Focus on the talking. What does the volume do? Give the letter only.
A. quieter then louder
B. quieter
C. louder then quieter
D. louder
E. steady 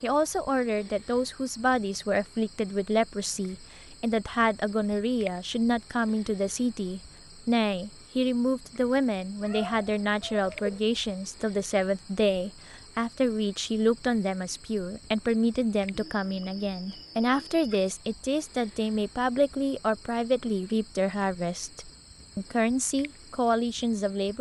E.